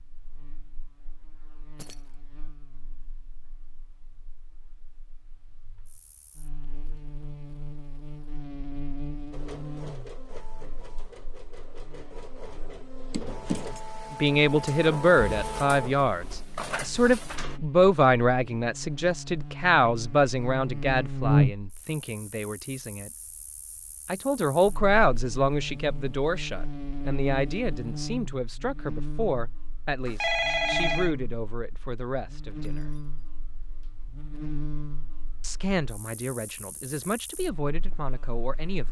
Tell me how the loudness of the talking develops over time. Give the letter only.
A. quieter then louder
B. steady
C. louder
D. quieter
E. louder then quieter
D.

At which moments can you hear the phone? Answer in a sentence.
You can hear the phone from 30.1 to 31.1 s.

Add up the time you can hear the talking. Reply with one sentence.
The talking can be heard for 21 seconds in total.